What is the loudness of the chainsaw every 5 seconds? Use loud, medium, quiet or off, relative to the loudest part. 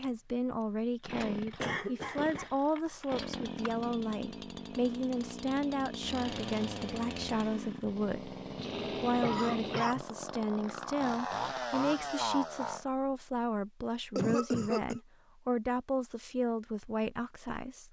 medium, loud, loud, off.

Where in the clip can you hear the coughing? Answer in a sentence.
The coughing can be heard from 1.6 to 2.5 s, from 9.2 to 10.1 s and from 14.2 to 15.0 s.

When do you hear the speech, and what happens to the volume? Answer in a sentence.
The speech can be heard from 0.0 to 17.8 s, at a steady volume.